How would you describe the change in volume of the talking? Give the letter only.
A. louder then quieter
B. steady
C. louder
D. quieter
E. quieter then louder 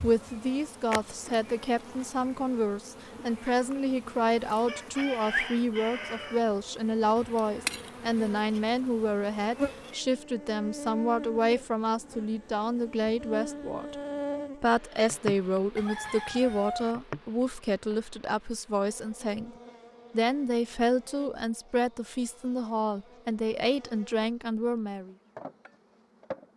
B.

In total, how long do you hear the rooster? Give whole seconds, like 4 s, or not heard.
3 s.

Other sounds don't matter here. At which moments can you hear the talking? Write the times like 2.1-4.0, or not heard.
0.0-13.9, 14.6-25.1.